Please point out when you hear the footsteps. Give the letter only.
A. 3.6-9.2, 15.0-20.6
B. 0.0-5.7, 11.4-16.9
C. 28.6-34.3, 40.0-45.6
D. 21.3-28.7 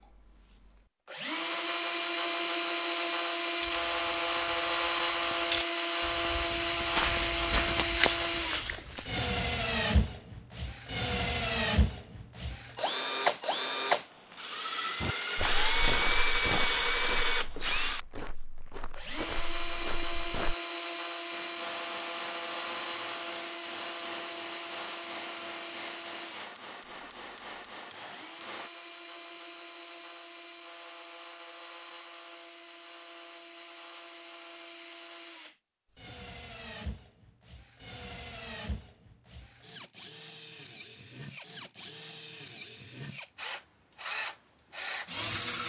A.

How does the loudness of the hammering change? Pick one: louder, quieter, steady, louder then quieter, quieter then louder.
steady.